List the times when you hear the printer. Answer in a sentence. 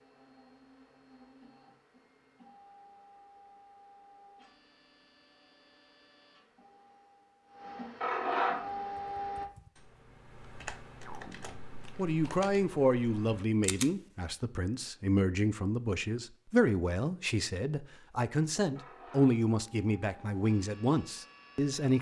You can hear the printer from 0.0 to 9.4 s and from 18.6 to 21.9 s.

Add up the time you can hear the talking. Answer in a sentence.
You can hear the talking for 10 seconds altogether.